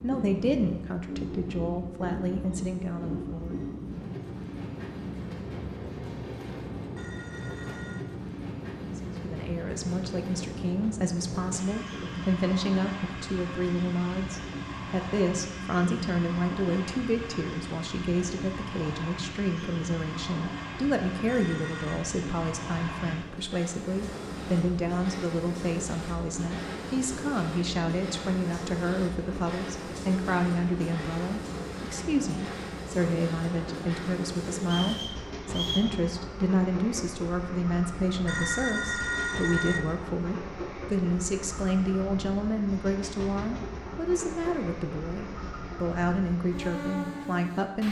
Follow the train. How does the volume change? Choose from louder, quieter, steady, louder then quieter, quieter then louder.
steady.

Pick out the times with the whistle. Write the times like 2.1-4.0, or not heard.
34.6-36.0.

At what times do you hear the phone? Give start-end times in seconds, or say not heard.
6.9-8.1, 21.2-22.1, 38.2-39.8.